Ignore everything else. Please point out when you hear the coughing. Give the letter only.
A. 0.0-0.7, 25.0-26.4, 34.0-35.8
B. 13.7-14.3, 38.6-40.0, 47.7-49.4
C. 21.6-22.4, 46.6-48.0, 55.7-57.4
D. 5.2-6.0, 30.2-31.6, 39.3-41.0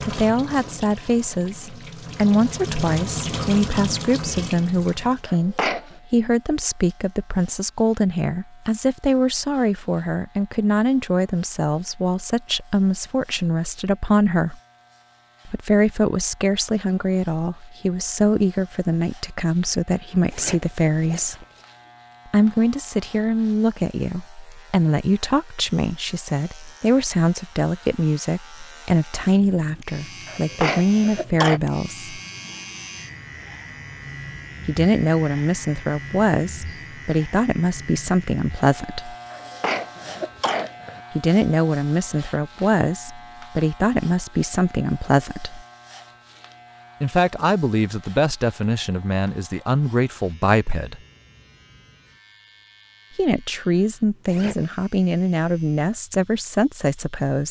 D.